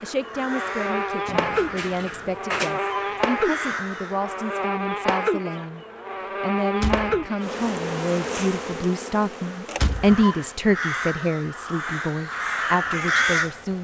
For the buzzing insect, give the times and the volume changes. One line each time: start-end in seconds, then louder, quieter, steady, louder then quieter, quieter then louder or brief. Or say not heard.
0.0-13.8 quieter.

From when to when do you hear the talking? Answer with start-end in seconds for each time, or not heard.
0.0-13.8.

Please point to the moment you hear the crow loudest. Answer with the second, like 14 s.
13 s.